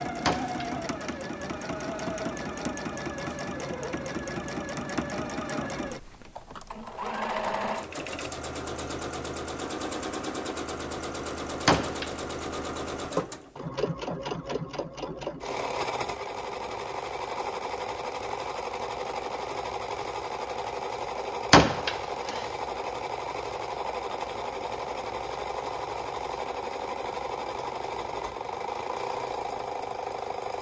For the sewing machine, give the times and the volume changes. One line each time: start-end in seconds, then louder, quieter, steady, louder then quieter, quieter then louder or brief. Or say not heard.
0.0-30.5 steady.